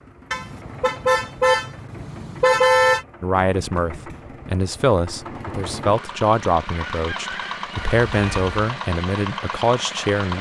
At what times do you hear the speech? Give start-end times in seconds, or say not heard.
3.2-10.3.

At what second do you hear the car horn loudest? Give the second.
3 s.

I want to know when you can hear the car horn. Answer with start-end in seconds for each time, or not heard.
0.3-3.0, 8.0-8.6.